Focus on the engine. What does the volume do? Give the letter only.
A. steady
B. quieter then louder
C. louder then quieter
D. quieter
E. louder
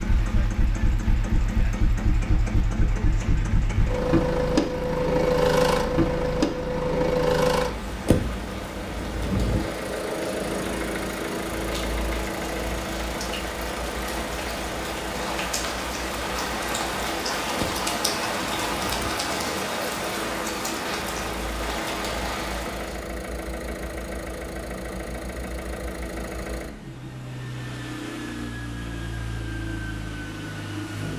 D.